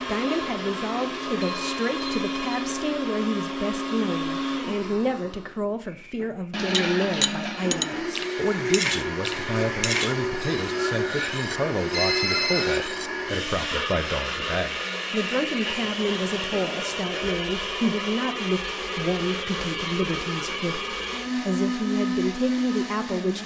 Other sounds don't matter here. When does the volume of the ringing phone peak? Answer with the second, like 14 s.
12 s.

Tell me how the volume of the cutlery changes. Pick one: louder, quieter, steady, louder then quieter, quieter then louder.
quieter.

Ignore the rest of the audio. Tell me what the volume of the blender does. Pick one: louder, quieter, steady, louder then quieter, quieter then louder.
steady.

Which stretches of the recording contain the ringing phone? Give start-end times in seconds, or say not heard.
1.4-2.7, 11.9-12.8, 15.7-17.1.